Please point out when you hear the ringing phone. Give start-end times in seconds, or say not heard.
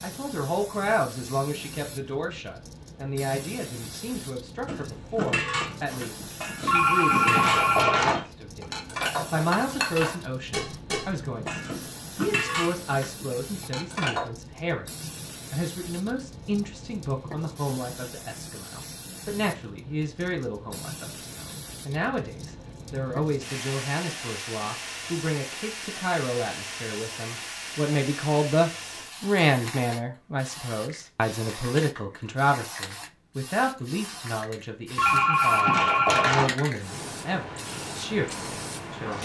6.7-8.2, 35.0-36.5.